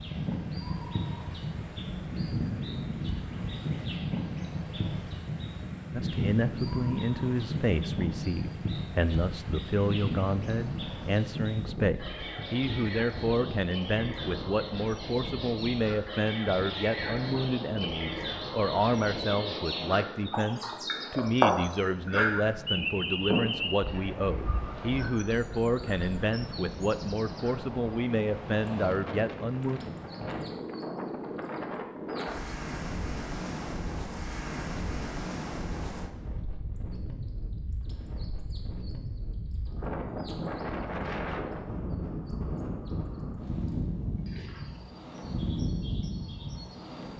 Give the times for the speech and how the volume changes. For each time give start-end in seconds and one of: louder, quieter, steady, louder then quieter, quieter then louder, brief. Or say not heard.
5.9-29.8 steady.